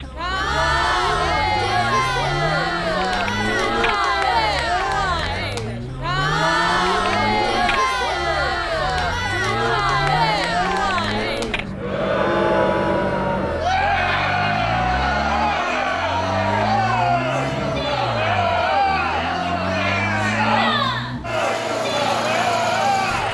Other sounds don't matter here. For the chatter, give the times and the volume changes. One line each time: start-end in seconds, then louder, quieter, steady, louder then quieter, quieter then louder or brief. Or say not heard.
0.0-23.3 steady.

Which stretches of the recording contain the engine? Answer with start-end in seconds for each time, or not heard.
0.0-23.3.